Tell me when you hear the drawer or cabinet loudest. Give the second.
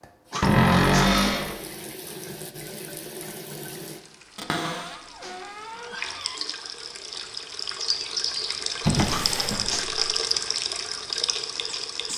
1 s.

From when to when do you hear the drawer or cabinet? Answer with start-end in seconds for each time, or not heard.
0.4-1.6, 4.3-6.4, 8.8-10.1.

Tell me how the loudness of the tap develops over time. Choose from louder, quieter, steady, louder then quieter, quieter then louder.
louder.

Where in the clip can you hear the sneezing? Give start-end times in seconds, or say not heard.
0.3-1.1, 4.6-6.2, 9.1-9.9.